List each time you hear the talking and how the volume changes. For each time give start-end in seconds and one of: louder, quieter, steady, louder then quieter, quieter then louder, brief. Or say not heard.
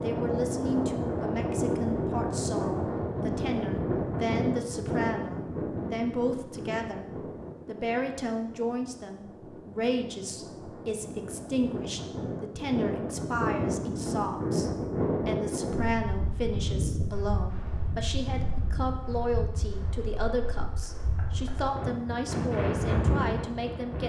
0.0-24.0 steady.